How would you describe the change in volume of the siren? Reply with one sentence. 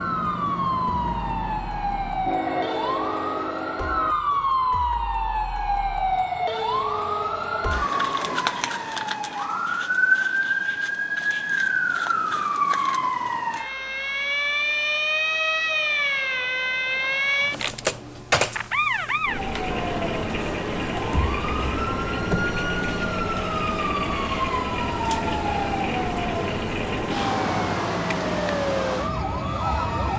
The volume of the siren stays about the same.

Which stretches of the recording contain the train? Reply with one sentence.
You can hear the train from 0.0 to 4.2 s and from 19.6 to 30.1 s.